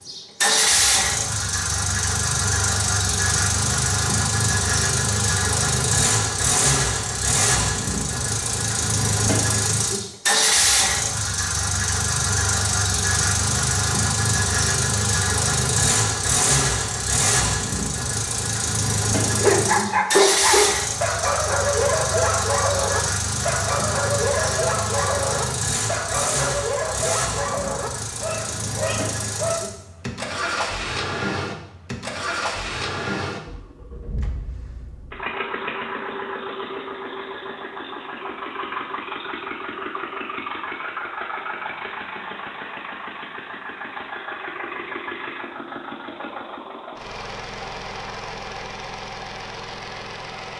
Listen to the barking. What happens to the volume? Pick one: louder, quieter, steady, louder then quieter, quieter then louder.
quieter.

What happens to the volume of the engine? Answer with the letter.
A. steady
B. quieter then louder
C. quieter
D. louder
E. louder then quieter
C.